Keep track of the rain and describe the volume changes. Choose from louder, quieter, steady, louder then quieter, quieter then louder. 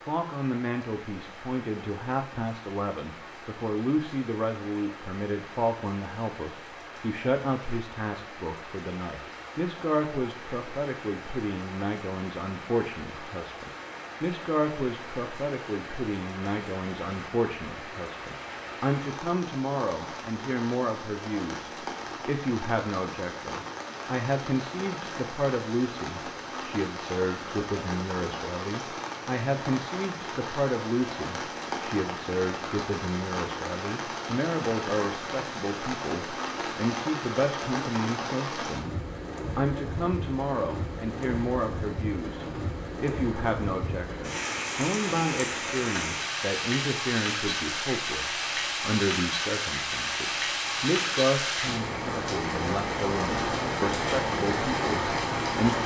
louder.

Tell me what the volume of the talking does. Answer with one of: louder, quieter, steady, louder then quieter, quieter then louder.
steady.